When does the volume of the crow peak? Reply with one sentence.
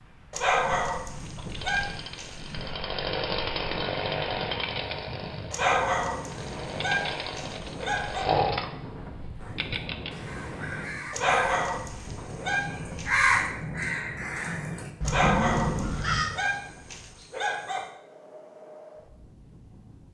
The loudest moment of the crow is at 13 seconds.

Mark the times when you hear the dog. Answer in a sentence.
You can hear the dog from 0.3 to 2.7 s, from 5.5 to 8.2 s, from 11.1 to 13.2 s and from 15.0 to 17.9 s.